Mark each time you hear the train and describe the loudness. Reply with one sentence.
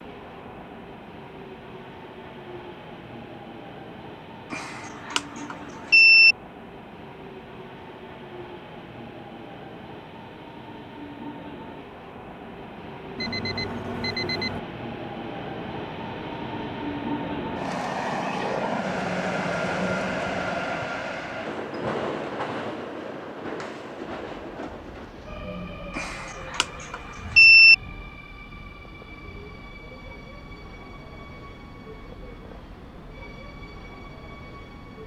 The train can be heard from 0.0 to 35.0 s, getting louder then quieter.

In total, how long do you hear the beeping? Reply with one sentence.
The beeping can be heard for 5 seconds in total.